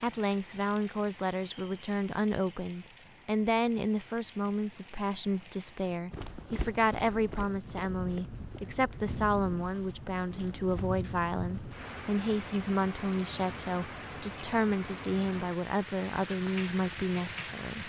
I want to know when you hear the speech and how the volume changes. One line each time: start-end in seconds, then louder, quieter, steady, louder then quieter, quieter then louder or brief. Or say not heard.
0.0-17.8 steady.